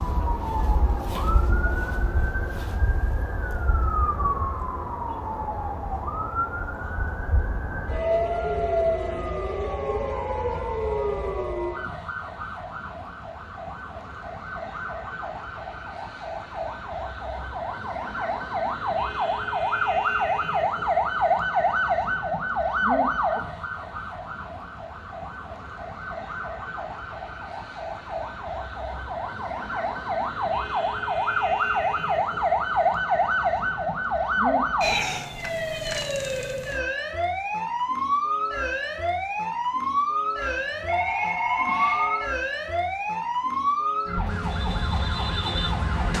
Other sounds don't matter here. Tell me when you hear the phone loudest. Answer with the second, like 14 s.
42 s.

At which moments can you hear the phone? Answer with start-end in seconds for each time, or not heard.
40.4-42.3.